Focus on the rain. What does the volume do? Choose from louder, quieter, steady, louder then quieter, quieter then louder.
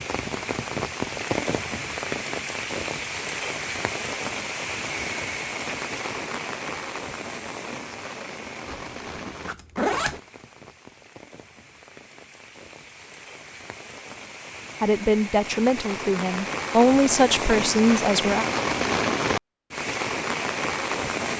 quieter then louder.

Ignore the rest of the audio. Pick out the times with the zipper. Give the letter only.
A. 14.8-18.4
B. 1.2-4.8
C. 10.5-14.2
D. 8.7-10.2
D.